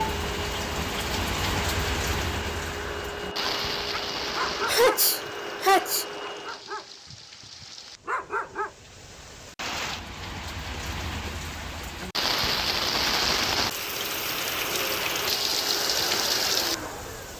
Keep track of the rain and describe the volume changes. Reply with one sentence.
The loudness of the rain goes down, then up.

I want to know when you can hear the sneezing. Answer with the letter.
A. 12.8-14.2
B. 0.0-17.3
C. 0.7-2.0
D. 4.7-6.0
D.